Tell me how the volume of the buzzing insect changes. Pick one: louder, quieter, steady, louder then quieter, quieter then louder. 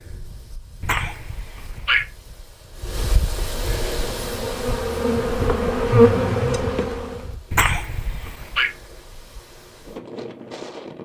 louder then quieter.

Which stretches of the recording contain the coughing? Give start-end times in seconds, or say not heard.
0.8-2.0, 7.5-8.7.